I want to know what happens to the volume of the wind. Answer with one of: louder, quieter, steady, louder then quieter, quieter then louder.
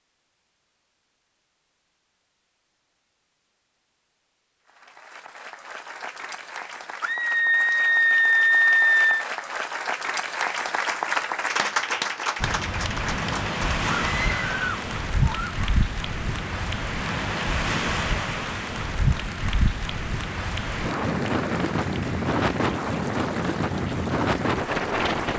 steady.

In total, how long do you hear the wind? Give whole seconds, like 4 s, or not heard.
13 s.